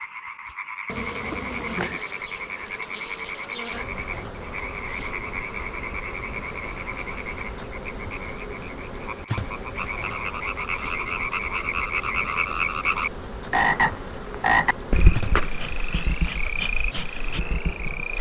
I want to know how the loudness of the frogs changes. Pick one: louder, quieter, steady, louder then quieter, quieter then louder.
louder.